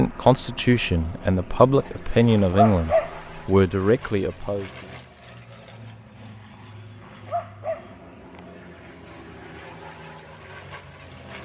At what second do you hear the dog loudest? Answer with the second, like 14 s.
3 s.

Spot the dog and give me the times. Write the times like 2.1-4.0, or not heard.
1.9-3.2, 6.6-8.4.